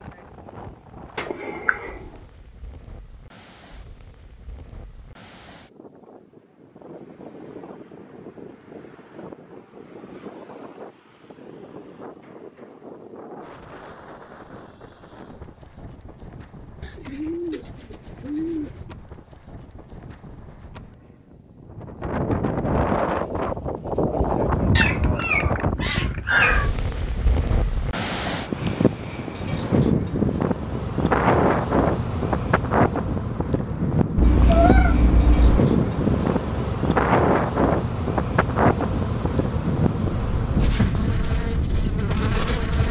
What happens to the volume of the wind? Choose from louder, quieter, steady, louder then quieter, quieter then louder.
louder.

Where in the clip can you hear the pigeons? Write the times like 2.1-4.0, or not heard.
16.8-19.0.